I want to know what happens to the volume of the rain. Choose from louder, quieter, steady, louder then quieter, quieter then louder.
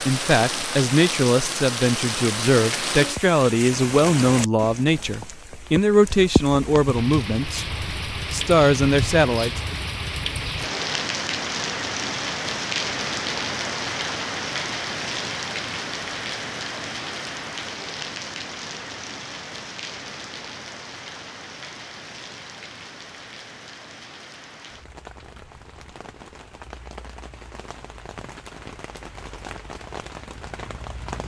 quieter.